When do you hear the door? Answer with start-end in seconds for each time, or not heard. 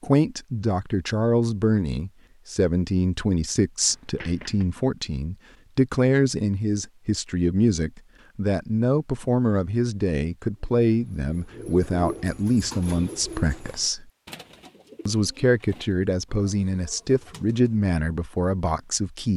not heard.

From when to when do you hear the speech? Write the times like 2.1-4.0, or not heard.
0.0-14.1, 15.1-19.3.